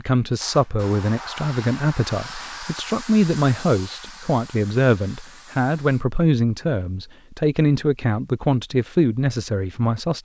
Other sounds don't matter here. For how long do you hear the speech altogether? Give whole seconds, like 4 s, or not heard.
10 s.